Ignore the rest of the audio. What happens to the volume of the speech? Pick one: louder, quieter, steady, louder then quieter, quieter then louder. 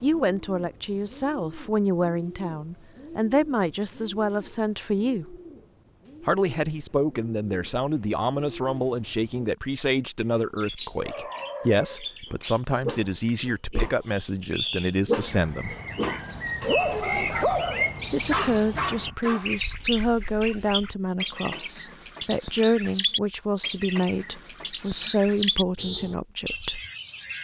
steady.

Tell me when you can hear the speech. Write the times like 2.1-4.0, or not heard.
0.0-5.3, 6.2-15.8, 18.1-26.8.